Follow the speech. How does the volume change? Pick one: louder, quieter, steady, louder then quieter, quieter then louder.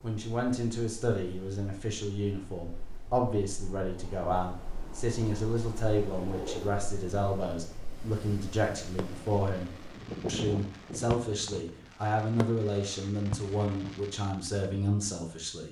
steady.